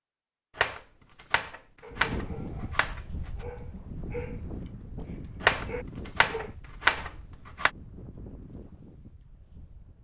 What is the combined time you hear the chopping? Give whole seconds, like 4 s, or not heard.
5 s.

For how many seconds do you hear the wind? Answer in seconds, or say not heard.
8 s.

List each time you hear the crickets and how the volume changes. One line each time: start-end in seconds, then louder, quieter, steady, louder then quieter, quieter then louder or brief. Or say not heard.
not heard.